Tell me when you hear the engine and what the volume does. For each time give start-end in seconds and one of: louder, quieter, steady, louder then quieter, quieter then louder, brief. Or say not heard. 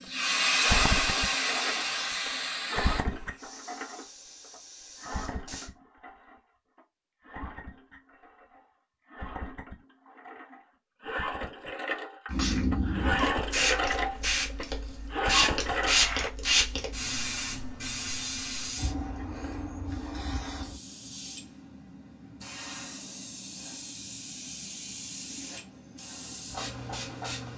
0.5-16.3 quieter then louder.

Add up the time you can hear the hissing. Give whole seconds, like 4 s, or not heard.
21 s.